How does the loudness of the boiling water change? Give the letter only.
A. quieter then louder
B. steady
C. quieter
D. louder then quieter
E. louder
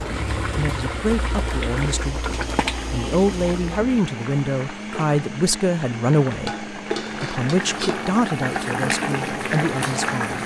A.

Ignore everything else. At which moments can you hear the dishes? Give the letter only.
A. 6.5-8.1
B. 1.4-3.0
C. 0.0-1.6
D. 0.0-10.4
A.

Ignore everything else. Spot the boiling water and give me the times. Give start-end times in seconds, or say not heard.
0.0-10.4.